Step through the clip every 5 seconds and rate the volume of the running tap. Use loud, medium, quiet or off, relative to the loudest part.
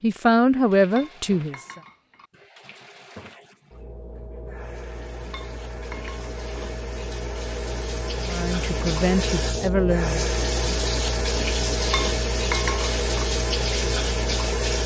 quiet, medium, loud.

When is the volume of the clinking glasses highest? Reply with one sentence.
The volume of the clinking glasses peaks at 13 seconds.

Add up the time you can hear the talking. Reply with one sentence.
You can hear the talking for 4 seconds altogether.